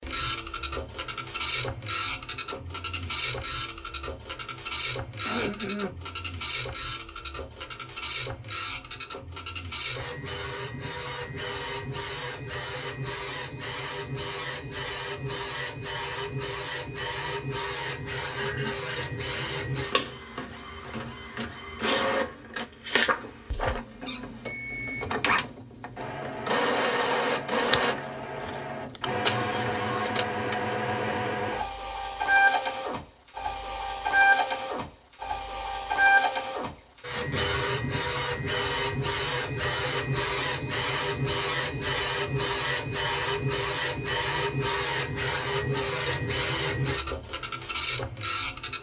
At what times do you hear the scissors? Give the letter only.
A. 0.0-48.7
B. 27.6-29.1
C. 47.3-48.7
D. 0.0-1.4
B.